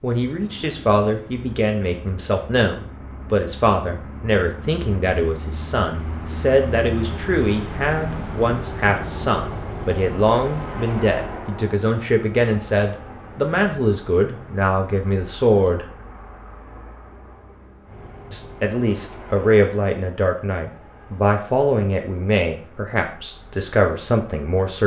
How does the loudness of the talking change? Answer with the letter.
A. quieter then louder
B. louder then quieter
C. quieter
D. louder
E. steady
E.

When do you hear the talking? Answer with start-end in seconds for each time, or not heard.
0.0-15.8, 18.3-24.8.